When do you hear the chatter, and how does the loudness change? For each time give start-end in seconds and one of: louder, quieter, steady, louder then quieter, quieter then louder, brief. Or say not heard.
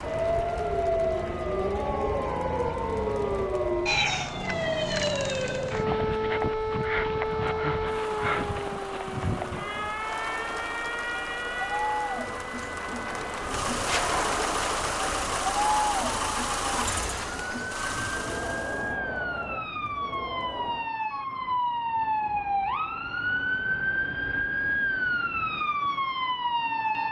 0.0-20.9 louder then quieter.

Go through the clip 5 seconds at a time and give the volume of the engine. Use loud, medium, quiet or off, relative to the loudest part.
medium, medium, loud, loud, off, off.